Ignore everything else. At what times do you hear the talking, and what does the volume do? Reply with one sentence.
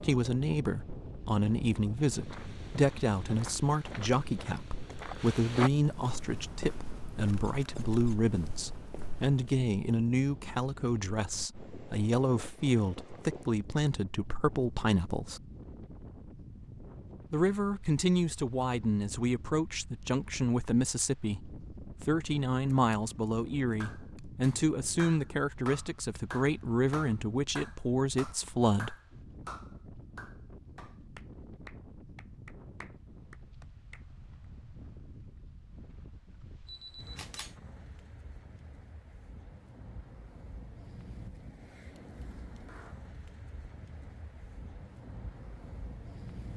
The talking can be heard from 0.0 to 15.4 s, at a steady volume; and from 17.3 to 28.9 s, at a steady volume.